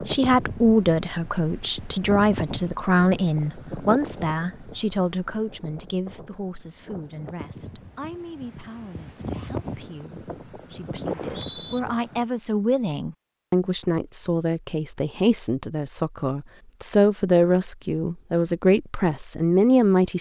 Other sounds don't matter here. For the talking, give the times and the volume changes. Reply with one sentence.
The talking can be heard from 0.0 to 20.1 s, getting quieter then louder.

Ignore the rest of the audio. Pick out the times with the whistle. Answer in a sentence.
The whistle can be heard from 11.1 to 11.8 s.